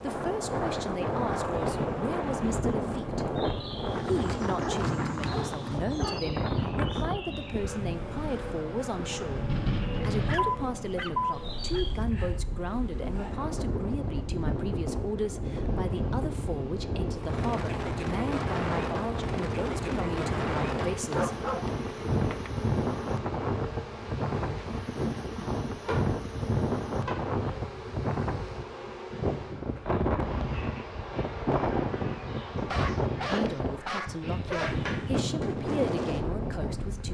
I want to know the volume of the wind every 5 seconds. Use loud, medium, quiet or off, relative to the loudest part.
loud, loud, medium, loud, loud, loud, loud, loud.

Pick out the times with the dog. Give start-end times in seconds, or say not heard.
4.2-6.2, 10.2-11.8, 20.9-22.5, 32.5-34.8.